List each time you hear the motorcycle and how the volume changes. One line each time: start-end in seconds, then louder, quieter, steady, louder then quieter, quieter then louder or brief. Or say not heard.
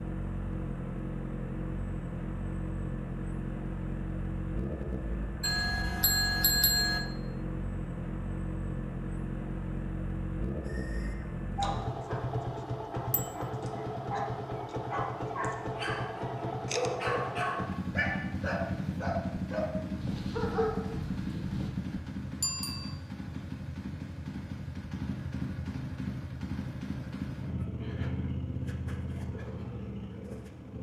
0.0-30.7 steady.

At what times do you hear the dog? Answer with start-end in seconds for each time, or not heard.
10.7-21.7.